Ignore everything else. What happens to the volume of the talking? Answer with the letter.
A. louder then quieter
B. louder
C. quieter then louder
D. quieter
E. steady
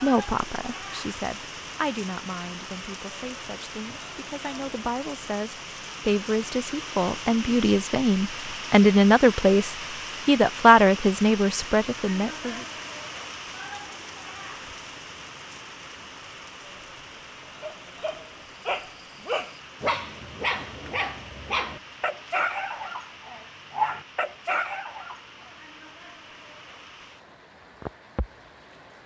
B.